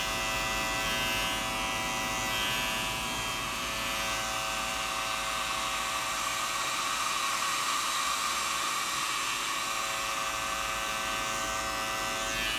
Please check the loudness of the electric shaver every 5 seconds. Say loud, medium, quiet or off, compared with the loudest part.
loud, medium, loud.